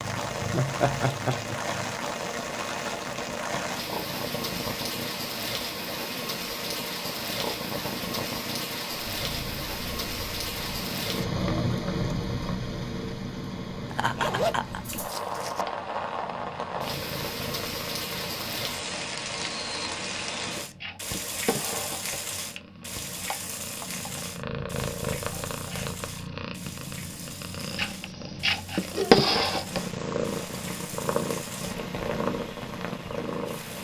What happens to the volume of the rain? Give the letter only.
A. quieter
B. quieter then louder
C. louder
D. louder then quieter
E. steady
A.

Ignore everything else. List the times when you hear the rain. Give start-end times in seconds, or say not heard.
0.0-33.8.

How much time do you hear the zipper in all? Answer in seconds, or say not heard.
2 s.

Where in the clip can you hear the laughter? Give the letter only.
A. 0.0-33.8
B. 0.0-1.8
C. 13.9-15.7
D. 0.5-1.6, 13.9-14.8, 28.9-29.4
D.